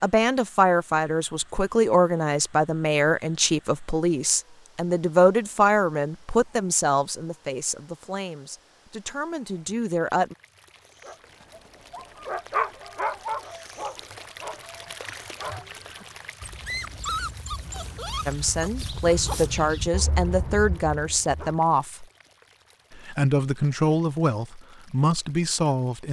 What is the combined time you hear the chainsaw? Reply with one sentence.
The chainsaw can't be heard in this clip.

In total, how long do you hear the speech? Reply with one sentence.
The speech can be heard for 17 seconds in total.